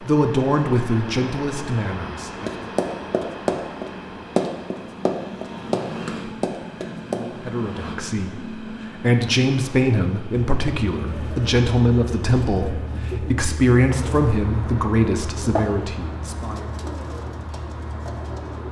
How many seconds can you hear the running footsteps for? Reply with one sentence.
The running footsteps can be heard for 5 seconds in total.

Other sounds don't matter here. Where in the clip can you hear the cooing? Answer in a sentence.
You can hear the cooing from 10.6 to 18.6 s.